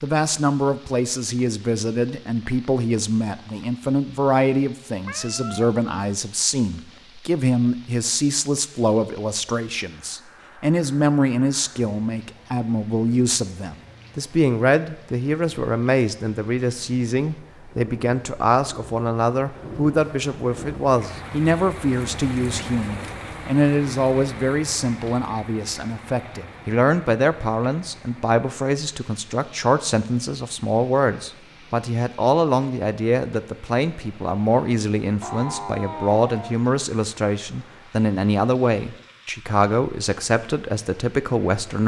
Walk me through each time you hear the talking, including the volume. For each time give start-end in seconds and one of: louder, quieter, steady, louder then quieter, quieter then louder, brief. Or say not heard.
0.0-41.8 steady.